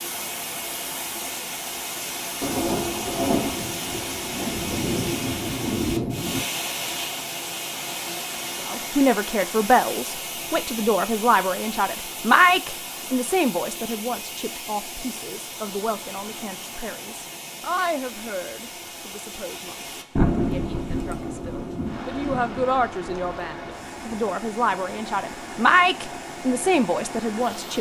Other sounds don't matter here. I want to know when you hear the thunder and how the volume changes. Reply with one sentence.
You can hear the thunder from 2.4 to 6.4 s, getting quieter then louder; and from 20.1 to 24.2 s, getting quieter.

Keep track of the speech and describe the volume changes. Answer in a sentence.
The volume of the speech goes down, then up.